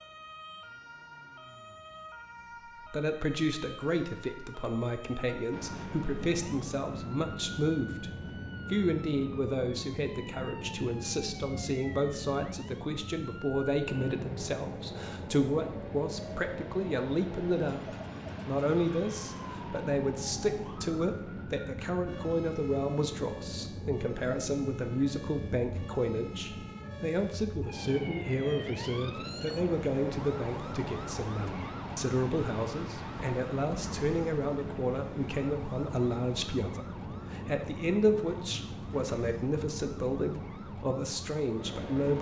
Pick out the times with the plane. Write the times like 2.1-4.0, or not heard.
5.5-42.1.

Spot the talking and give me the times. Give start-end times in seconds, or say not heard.
2.9-8.1, 8.7-42.1.